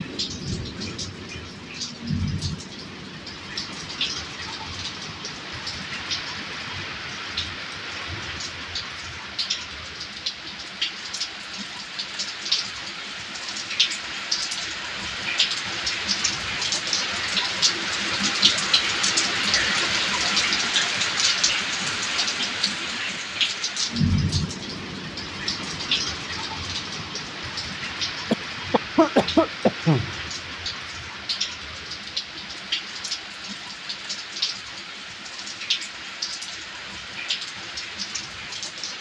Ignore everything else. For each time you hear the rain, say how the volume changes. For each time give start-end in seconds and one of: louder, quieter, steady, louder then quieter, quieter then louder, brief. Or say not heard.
0.0-38.9 louder then quieter.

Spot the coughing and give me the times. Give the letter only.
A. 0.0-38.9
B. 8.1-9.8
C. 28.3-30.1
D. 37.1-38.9
C.